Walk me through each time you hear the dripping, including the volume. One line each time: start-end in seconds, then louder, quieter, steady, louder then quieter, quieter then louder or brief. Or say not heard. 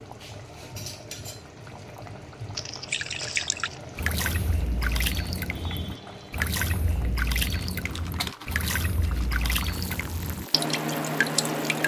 2.9-11.8 steady.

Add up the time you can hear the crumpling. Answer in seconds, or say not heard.
3 s.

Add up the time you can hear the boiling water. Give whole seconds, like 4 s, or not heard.
12 s.